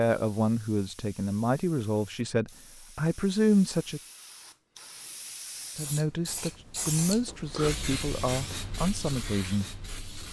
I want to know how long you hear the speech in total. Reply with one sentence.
You can hear the speech for 8 seconds altogether.